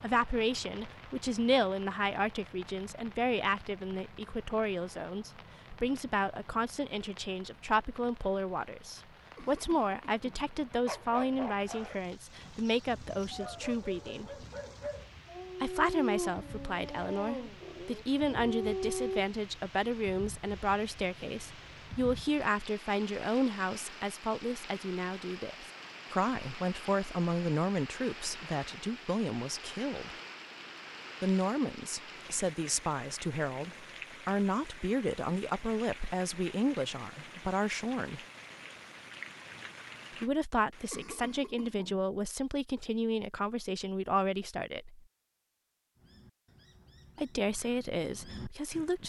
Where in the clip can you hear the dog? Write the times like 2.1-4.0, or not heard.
10.8-19.2.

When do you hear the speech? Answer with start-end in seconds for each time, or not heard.
0.0-14.3, 15.6-30.1, 31.2-38.2, 40.2-45.0, 47.1-49.0.